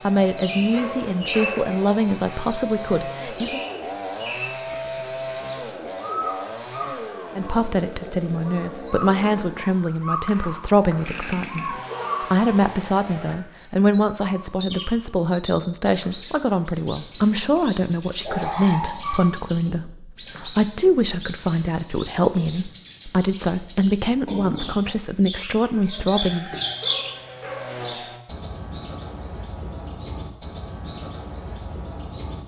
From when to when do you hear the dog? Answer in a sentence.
The dog can be heard from 0.6 to 1.8 s, from 11.8 to 12.2 s, from 18.2 to 19.9 s and from 26.6 to 27.9 s.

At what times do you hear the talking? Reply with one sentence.
You can hear the talking from 0.0 to 3.6 s and from 7.3 to 26.6 s.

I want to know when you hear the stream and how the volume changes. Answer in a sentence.
You can't hear the stream here.